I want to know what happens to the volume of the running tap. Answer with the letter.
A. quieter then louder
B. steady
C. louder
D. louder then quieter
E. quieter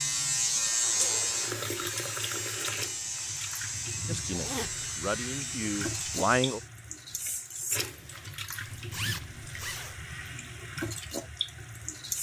B.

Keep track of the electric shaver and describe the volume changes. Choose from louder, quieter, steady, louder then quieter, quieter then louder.
quieter.